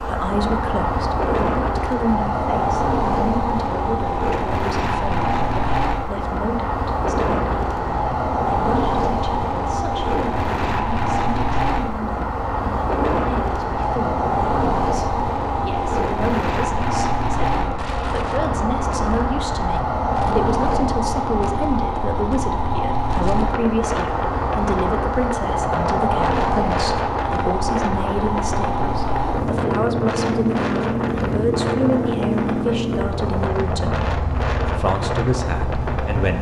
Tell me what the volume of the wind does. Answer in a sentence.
The loudness of the wind stays about the same.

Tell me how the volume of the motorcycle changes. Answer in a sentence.
The loudness of the motorcycle stays about the same.